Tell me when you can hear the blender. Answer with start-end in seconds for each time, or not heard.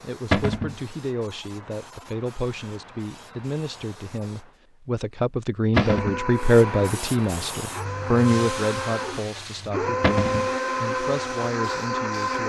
5.7-12.4.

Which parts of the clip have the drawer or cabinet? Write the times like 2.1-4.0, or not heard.
0.3-0.8, 5.8-6.2, 10.0-10.5.